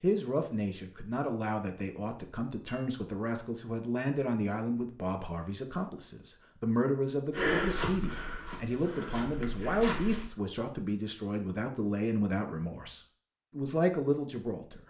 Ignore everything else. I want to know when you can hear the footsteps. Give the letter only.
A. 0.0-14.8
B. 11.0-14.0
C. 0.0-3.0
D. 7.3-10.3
D.